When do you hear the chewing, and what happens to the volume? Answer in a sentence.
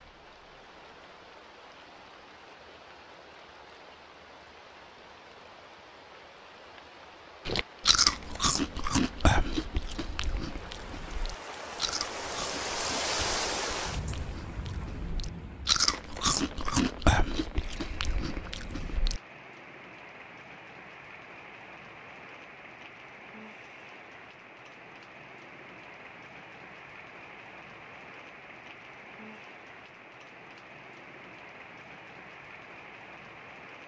The chewing can be heard from 7.5 to 19.2 s, getting quieter then louder.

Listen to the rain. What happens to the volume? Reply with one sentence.
The loudness of the rain goes up, then down.